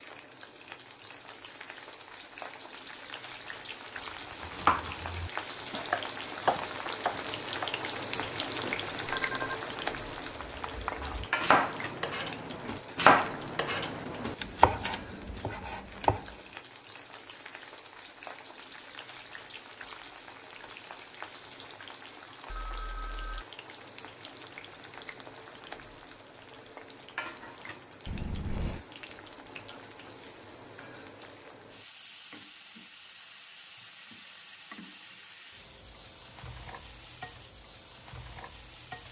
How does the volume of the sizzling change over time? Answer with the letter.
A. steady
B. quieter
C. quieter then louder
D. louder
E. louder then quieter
B.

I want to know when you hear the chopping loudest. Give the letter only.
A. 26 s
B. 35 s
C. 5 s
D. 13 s
D.